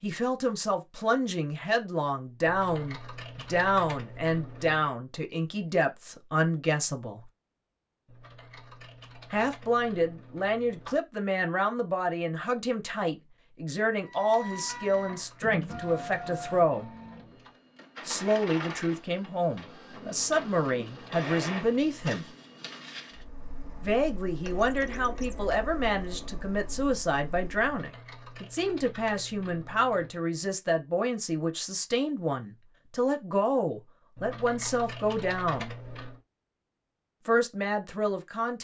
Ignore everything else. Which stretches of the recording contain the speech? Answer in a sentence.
You can hear the speech from 0.0 to 7.2 s, from 9.3 to 16.9 s, from 18.1 to 22.2 s, from 23.8 to 35.8 s and from 37.2 to 38.5 s.